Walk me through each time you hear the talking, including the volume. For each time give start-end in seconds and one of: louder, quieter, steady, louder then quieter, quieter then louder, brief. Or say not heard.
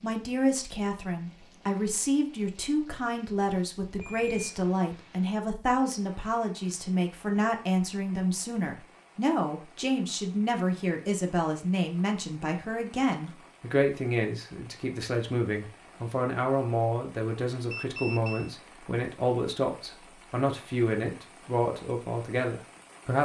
0.0-23.2 steady.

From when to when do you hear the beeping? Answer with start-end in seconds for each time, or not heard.
4.0-4.5, 17.7-18.6.